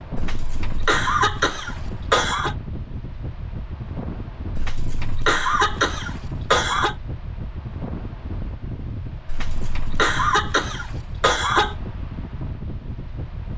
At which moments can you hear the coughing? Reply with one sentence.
You can hear the coughing from 0.1 to 2.5 s, from 4.5 to 7.0 s and from 9.2 to 11.8 s.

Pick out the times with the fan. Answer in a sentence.
You can hear the fan from 0.0 to 13.5 s.